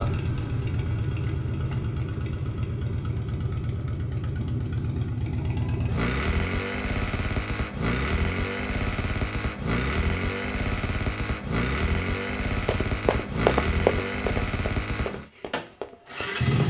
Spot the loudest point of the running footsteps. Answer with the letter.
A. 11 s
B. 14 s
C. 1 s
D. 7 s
B.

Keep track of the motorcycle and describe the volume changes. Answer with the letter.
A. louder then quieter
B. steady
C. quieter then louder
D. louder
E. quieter
B.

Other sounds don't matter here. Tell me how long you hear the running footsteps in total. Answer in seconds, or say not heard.
4 s.